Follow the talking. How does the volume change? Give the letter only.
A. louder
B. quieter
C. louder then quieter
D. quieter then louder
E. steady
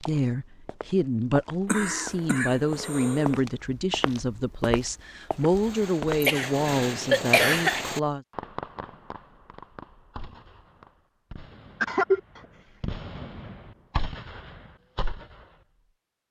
E.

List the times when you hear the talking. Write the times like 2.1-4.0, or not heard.
0.0-8.2.